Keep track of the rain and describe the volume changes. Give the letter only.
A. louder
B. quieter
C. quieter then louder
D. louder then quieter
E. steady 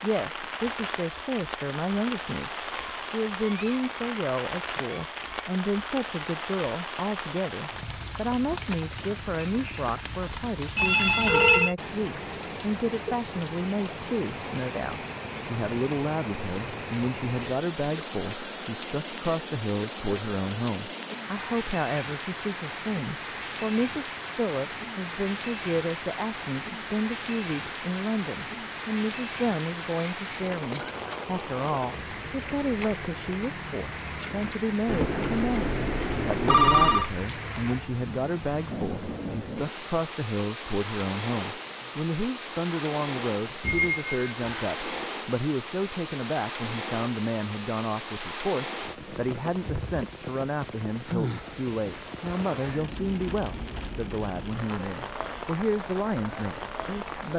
E.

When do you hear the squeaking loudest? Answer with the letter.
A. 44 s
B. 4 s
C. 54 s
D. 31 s
A.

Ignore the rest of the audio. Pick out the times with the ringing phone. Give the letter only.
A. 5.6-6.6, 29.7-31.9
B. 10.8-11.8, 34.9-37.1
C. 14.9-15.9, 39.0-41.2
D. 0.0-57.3
B.